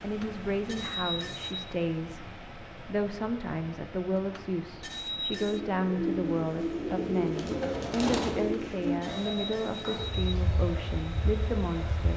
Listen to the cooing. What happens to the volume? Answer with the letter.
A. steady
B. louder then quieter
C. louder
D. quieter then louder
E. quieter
E.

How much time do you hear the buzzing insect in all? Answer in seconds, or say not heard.
2 s.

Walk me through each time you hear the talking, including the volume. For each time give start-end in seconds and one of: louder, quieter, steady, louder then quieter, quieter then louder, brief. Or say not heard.
0.0-12.1 steady.